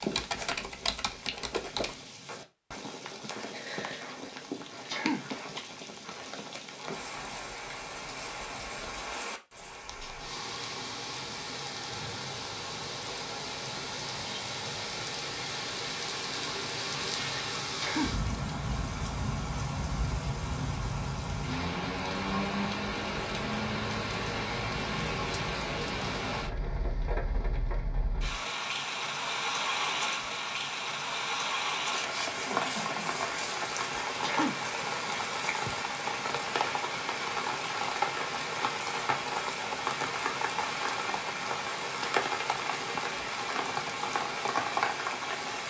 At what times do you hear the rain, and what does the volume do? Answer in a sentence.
You can hear the rain from 0.0 to 45.6 s, getting louder.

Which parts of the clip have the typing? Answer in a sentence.
You can hear the typing from 0.0 to 1.9 s.